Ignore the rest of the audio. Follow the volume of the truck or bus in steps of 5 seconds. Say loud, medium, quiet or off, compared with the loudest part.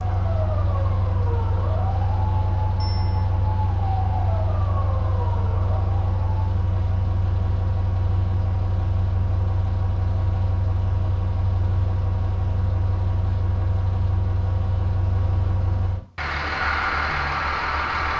medium, medium, medium, loud.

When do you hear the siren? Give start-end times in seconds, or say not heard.
0.0-6.2, 16.4-18.1.